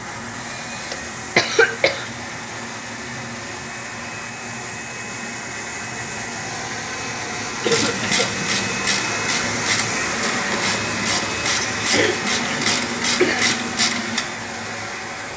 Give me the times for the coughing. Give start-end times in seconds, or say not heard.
0.4-2.1, 7.6-8.2, 11.9-13.6.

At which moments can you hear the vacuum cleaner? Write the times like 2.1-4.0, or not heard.
0.0-15.3.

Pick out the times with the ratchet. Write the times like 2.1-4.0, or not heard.
7.7-14.2.